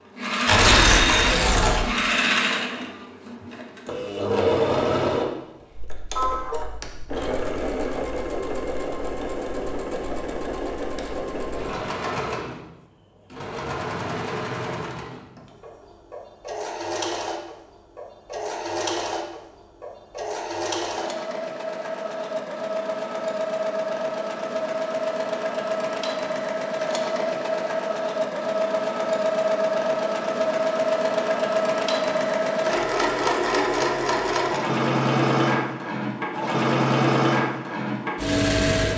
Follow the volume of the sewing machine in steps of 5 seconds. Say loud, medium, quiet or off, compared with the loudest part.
loud, medium, medium, medium, medium, loud, loud, loud.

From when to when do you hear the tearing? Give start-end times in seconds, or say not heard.
0.5-1.9.